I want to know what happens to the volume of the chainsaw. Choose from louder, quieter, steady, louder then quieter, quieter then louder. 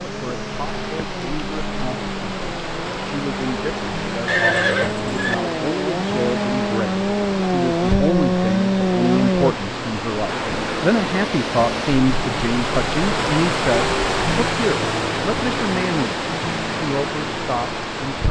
louder.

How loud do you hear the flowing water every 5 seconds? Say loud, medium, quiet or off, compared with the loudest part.
medium, medium, loud, loud.